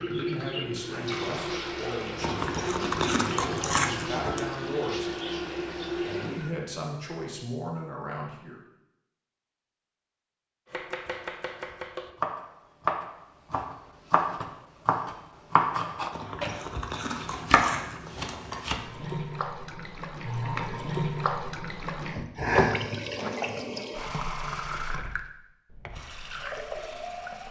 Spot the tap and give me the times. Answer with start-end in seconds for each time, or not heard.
0.0-6.5, 18.8-27.4.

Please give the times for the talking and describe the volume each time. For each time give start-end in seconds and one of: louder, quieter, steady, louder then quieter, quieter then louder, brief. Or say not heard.
0.1-5.1 steady
6.0-8.6 brief.